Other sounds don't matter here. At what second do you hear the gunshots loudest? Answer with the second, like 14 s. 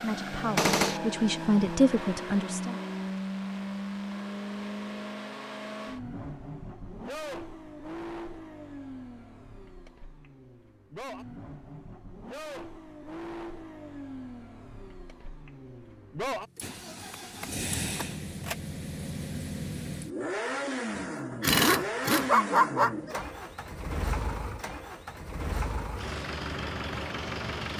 1 s.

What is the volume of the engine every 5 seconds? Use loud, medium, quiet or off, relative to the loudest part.
loud, medium, medium, loud, loud, loud.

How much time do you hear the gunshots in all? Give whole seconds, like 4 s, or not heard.
2 s.